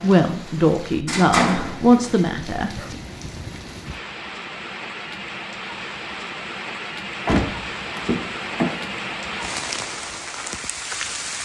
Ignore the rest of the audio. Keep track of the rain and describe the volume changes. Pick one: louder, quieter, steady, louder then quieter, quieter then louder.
louder.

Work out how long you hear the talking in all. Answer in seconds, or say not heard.
3 s.